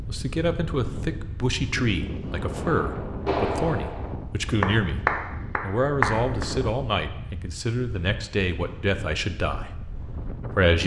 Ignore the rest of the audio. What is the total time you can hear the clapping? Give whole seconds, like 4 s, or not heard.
4 s.